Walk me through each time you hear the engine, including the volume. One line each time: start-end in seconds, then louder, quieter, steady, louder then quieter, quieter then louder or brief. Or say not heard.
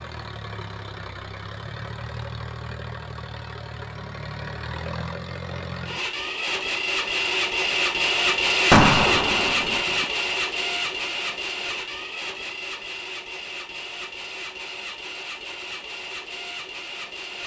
0.0-17.4 louder then quieter.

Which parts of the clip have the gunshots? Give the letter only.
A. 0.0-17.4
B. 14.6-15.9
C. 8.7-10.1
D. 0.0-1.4
C.